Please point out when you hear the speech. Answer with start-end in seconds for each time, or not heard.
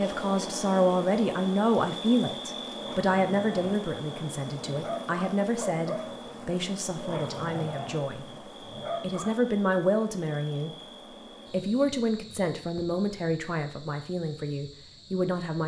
0.0-8.2, 9.0-10.7, 11.5-15.6.